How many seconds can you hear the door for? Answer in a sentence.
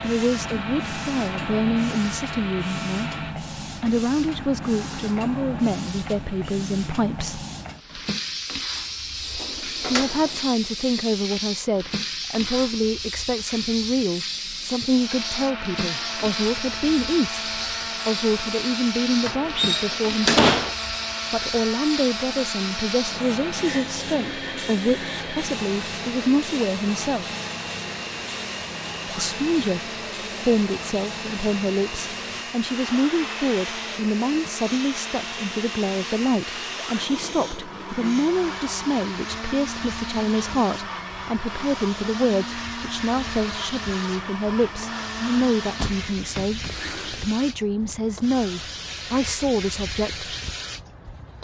You can hear the door for 4 seconds altogether.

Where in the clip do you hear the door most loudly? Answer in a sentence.
The volume of the door peaks at 20 seconds.